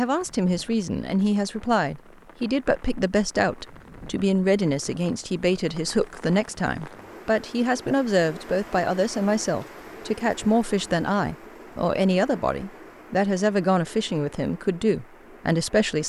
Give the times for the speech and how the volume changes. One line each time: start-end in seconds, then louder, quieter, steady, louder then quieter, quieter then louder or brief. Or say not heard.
0.0-16.0 steady.